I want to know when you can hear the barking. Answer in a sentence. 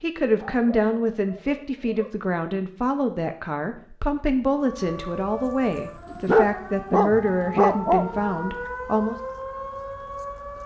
You can hear the barking from 0.3 to 2.2 s and from 6.1 to 8.7 s.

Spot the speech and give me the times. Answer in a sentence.
You can hear the speech from 0.0 to 9.2 s.